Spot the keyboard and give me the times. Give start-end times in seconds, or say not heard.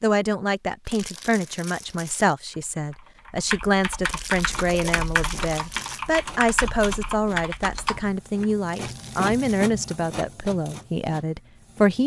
2.5-8.5.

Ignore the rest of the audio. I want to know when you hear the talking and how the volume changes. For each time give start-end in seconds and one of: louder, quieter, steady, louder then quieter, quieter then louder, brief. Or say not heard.
0.0-12.0 steady.